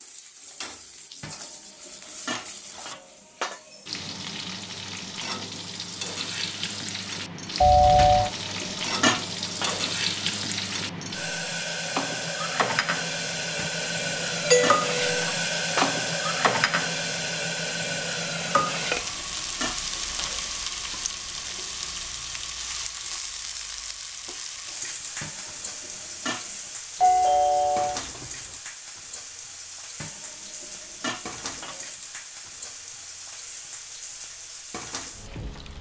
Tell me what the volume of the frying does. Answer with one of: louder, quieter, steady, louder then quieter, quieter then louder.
louder then quieter.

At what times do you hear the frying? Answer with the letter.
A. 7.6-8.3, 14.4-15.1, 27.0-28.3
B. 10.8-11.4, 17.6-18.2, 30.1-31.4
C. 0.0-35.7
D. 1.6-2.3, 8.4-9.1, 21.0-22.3
C.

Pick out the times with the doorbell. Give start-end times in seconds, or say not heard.
7.6-8.3, 14.4-15.1, 27.0-28.3.